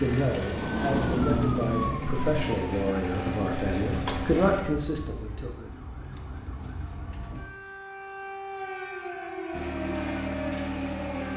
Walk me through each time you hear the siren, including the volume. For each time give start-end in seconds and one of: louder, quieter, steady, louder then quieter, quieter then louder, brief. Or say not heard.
0.0-11.3 quieter then louder.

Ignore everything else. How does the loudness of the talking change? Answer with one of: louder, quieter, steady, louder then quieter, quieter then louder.
louder.